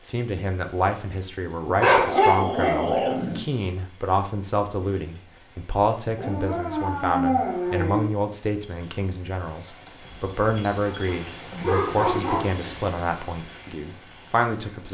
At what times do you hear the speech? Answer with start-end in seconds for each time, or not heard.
0.0-14.8.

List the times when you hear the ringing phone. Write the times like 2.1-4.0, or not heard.
not heard.